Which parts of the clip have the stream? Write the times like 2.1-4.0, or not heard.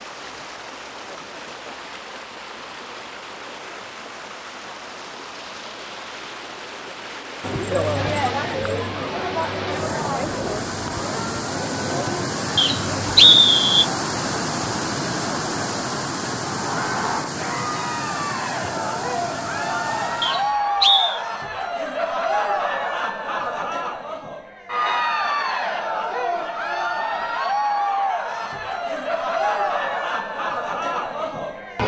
0.0-20.6.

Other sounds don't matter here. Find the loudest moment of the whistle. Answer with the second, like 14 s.
13 s.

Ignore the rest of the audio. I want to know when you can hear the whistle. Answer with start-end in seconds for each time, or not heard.
12.6-13.8, 20.2-21.2.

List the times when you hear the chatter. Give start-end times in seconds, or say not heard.
7.4-31.8.